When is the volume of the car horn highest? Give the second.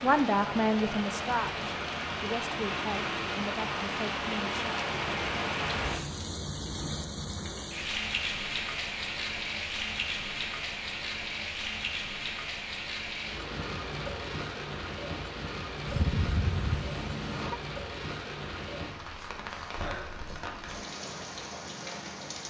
16 s.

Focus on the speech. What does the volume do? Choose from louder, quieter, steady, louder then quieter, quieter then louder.
quieter.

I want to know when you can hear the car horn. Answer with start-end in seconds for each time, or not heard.
15.8-17.6.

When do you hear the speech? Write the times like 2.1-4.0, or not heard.
0.0-4.8.